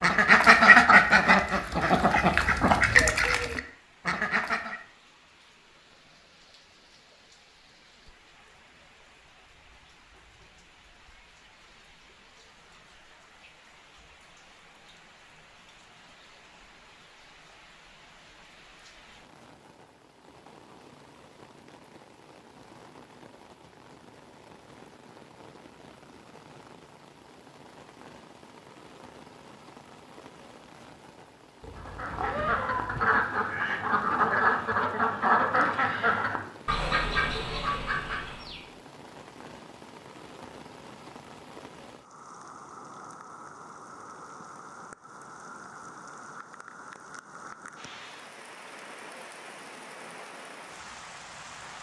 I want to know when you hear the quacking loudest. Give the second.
1 s.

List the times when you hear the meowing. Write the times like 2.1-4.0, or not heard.
31.6-33.1.